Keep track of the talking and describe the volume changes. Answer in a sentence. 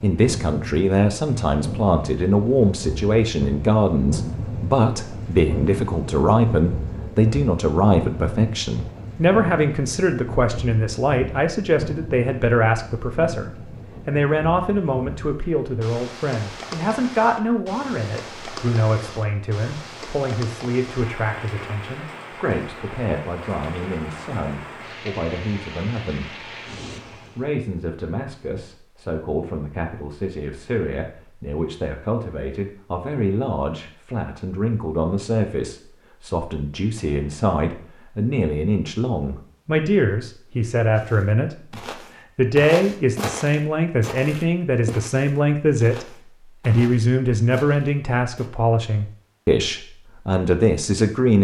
The loudness of the talking goes down, then up.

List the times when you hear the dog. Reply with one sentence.
The dog can't be heard in this clip.